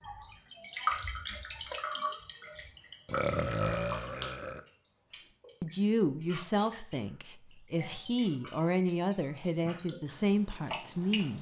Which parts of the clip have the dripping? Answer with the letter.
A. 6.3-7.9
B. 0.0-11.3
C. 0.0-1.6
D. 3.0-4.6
B.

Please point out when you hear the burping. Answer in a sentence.
You can hear the burping from 3.0 to 4.6 s.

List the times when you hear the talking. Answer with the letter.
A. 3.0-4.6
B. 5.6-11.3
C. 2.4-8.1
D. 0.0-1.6
B.